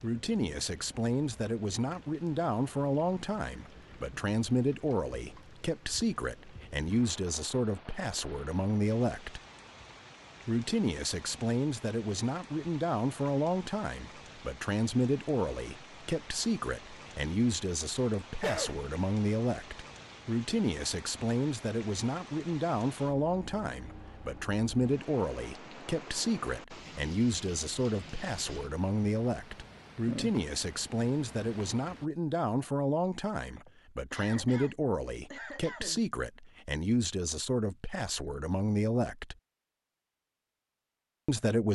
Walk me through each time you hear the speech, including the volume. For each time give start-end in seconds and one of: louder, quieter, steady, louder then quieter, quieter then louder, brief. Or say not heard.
0.0-9.4 steady
10.4-39.4 steady
41.2-41.7 brief.